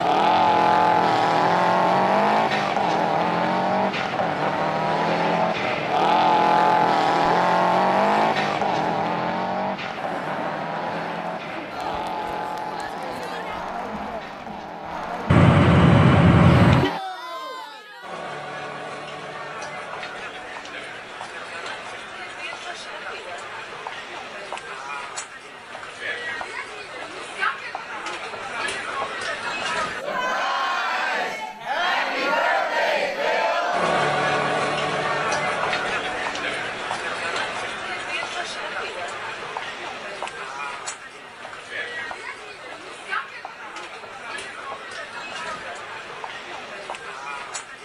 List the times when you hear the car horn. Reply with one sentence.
You can hear the car horn from 15.3 to 16.9 s.